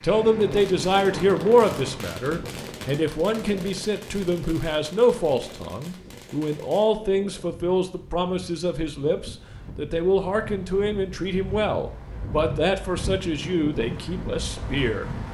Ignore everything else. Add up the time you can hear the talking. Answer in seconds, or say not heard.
15 s.